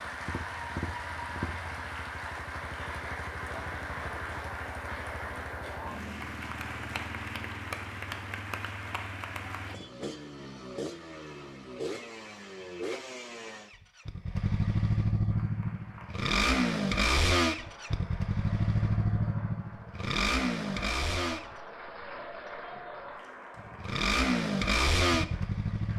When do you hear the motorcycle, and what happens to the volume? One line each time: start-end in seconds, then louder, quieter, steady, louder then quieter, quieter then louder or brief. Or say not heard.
0.0-21.6 louder
23.6-25.9 brief.